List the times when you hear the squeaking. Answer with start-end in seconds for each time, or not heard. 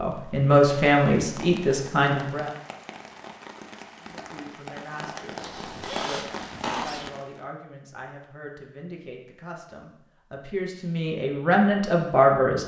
5.4-7.1.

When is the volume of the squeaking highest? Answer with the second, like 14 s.
7 s.